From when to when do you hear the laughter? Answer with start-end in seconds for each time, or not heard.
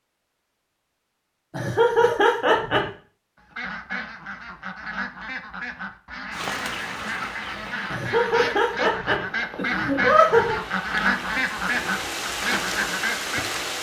1.5-2.9, 7.9-10.6.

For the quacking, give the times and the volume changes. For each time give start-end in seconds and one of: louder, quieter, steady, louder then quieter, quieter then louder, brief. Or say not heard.
3.4-13.4 louder.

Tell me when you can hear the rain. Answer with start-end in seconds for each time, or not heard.
6.3-13.7.